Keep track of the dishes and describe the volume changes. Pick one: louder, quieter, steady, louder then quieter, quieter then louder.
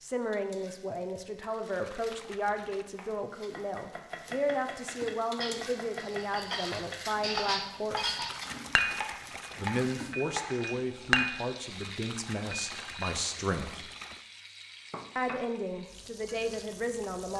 louder then quieter.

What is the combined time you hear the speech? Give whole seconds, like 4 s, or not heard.
15 s.